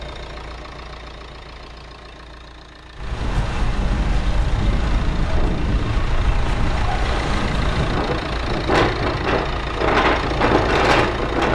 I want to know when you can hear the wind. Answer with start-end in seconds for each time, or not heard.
3.0-11.5.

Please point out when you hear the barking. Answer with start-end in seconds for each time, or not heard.
not heard.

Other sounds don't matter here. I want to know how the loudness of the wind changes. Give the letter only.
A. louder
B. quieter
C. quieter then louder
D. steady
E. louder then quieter
A.